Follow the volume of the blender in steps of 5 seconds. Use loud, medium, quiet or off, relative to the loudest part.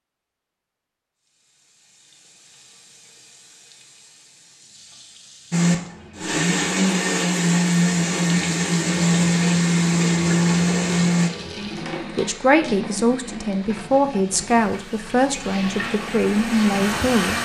off, loud, loud, medium.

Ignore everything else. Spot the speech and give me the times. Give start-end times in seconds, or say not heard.
11.6-17.4.